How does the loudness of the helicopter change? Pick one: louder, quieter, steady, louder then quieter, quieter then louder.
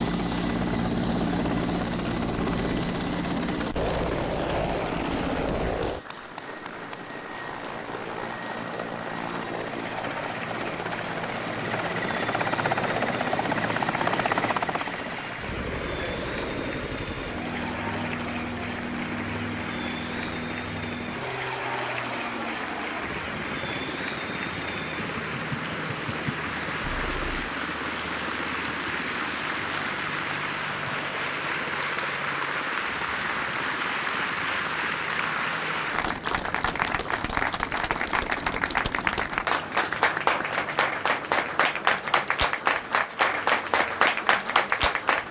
quieter.